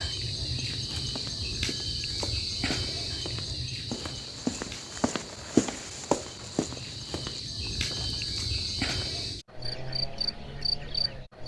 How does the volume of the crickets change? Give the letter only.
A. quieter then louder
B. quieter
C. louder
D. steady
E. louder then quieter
A.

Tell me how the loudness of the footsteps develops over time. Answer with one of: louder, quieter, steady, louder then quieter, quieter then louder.
louder then quieter.